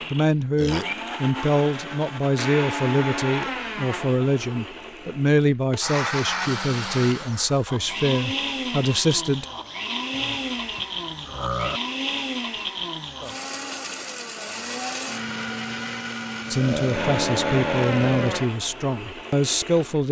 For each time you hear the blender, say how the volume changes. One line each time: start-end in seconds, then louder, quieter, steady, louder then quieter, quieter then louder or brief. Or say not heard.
0.0-20.0 steady.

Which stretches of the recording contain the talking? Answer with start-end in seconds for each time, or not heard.
0.1-9.4, 16.5-20.0.